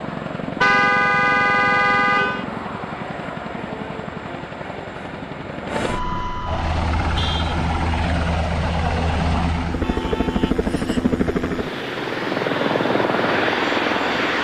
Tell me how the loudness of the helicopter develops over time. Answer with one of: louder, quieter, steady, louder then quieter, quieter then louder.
louder.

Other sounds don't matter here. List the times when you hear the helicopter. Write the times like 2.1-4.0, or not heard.
0.0-14.3.